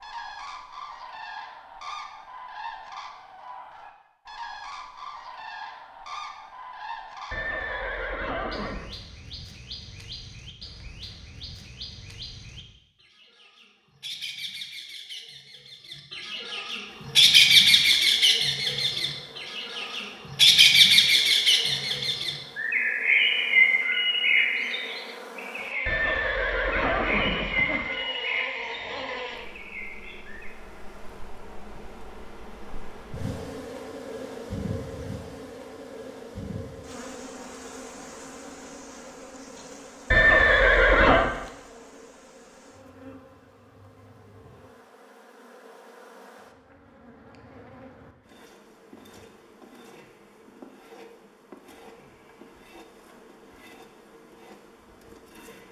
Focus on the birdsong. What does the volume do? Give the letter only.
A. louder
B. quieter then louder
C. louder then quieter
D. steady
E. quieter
C.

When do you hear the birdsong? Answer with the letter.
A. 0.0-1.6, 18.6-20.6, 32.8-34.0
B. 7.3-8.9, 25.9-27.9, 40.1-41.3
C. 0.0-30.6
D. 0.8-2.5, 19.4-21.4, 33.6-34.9
C.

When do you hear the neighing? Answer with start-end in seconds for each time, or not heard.
7.3-8.9, 25.9-27.9, 40.1-41.3.